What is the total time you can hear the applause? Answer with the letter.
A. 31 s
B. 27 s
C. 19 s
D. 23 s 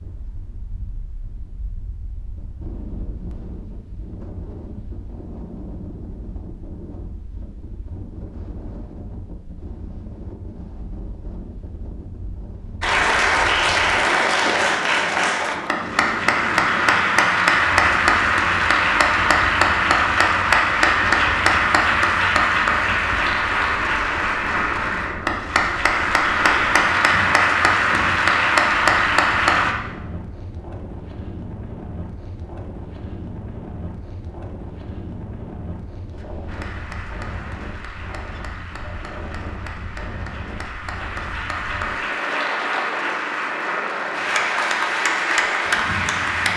B.